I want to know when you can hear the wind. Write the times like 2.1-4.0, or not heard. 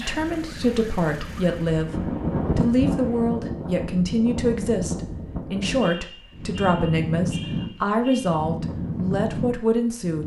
0.2-10.2.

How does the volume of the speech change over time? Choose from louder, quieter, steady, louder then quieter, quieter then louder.
steady.